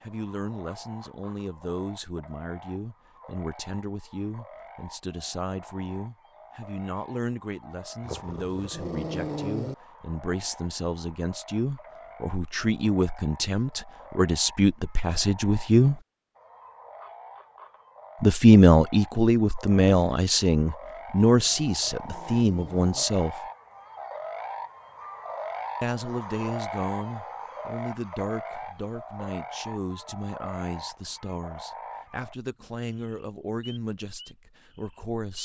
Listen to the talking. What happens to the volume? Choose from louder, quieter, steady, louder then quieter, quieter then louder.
louder then quieter.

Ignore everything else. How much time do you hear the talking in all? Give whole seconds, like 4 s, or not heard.
31 s.